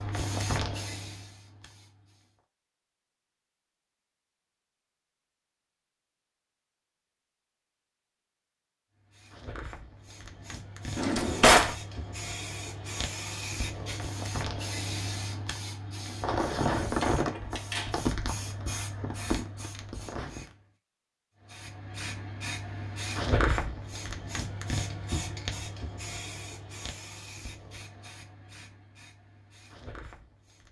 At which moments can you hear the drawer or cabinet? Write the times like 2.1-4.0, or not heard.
10.9-11.8, 17.0-17.9.